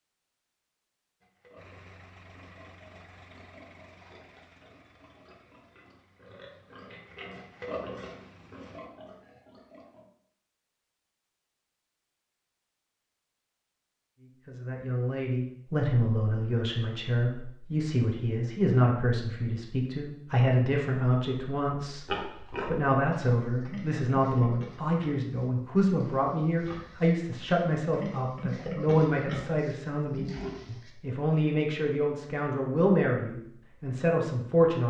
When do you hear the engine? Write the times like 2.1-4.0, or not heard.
1.6-8.8.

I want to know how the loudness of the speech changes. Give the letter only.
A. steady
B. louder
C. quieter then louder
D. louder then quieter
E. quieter
A.